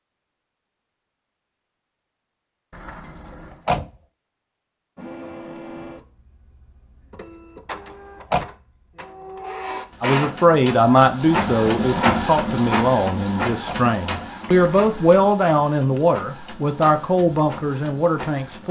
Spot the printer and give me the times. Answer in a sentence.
The printer can be heard from 5.0 to 18.6 s.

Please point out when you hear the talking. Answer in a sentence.
You can hear the talking from 10.0 to 18.6 s.